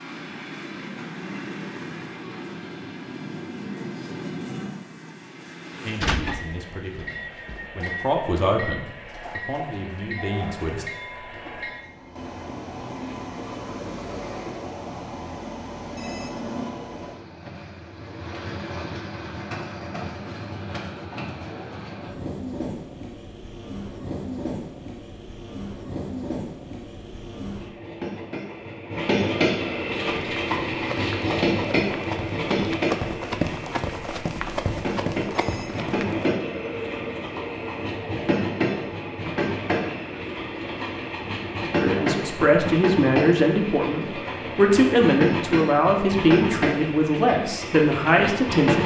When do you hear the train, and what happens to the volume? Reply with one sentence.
You can hear the train from 0.0 to 48.8 s, getting louder.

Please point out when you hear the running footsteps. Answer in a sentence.
You can hear the running footsteps from 30.0 to 36.4 s.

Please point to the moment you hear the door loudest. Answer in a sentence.
The loudest moment of the door is at 6 seconds.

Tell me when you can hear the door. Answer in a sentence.
You can hear the door from 6.0 to 7.7 s.